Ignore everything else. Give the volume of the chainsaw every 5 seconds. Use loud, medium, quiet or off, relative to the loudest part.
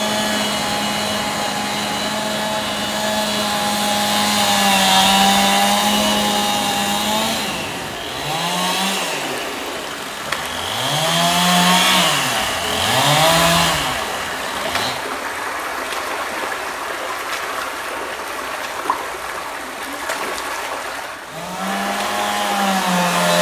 loud, loud, loud, off, loud.